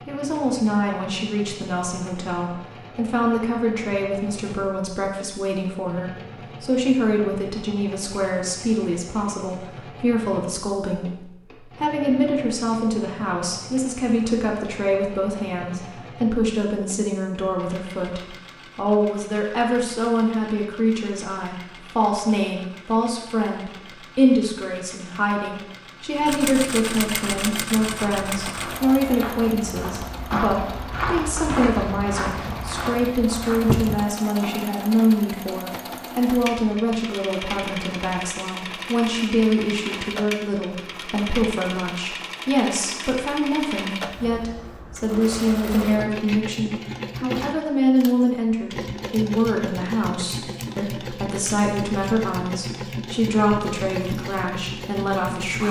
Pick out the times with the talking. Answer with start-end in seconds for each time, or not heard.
0.1-55.6.